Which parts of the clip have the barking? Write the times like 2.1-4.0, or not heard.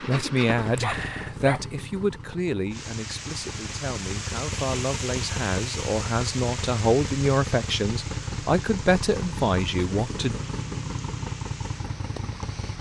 0.6-1.6.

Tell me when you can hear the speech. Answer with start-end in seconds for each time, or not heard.
0.1-10.3.